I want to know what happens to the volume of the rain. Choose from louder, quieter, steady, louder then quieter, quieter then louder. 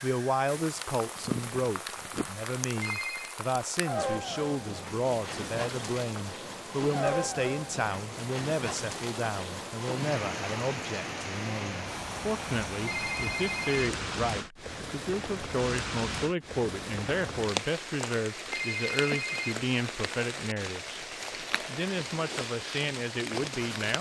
steady.